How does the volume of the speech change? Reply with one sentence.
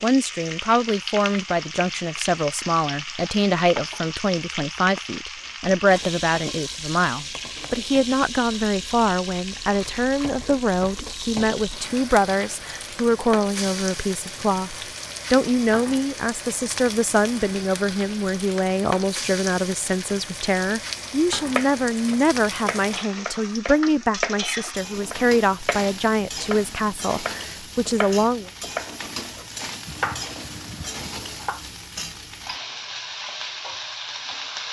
The loudness of the speech stays about the same.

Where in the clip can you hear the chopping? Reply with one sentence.
You can hear the chopping from 21.6 to 31.6 s.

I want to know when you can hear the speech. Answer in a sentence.
You can hear the speech from 0.0 to 28.5 s.